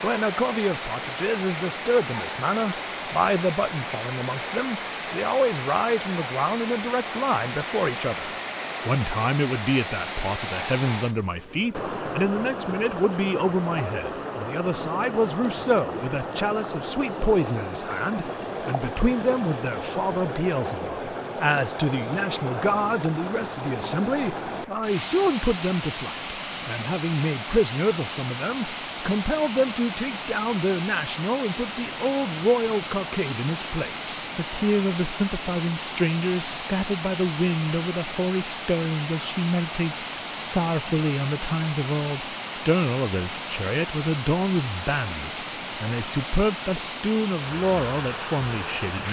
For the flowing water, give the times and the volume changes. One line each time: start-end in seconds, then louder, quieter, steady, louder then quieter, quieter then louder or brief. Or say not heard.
0.0-49.0 steady.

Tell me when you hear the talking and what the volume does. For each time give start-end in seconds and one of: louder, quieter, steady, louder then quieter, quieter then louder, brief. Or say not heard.
0.0-49.0 steady.